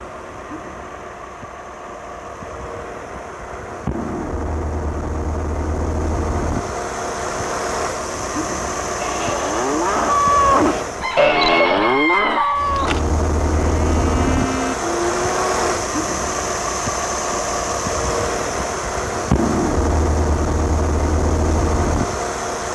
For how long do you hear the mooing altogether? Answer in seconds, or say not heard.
7 s.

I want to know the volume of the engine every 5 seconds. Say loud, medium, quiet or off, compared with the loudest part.
medium, loud, loud, loud, loud.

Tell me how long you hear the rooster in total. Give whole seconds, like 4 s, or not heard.
2 s.